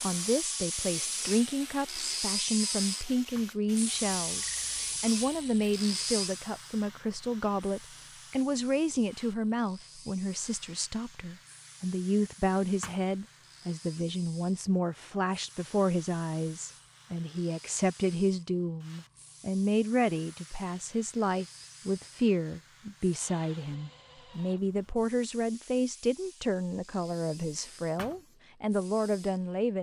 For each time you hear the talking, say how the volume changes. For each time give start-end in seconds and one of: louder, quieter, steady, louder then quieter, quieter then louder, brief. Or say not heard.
0.0-29.7 steady.